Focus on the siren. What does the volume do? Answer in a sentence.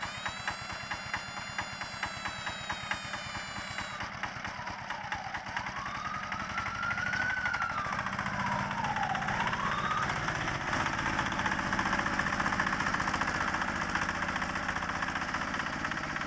The volume of the siren goes up.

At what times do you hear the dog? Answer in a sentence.
You can't hear the dog here.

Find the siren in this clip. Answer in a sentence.
The siren can be heard from 0.0 to 10.1 s.